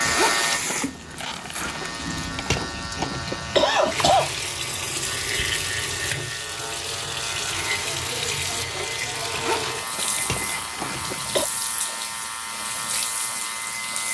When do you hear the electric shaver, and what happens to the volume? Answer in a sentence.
You can hear the electric shaver from 0.0 to 14.0 s, at a steady volume.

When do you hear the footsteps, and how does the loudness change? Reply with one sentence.
You can't hear the footsteps here.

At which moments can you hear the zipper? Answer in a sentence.
The zipper can be heard from 0.1 to 1.9 s and from 9.3 to 11.2 s.